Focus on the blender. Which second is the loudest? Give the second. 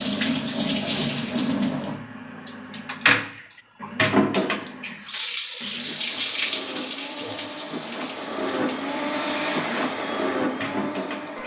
10 s.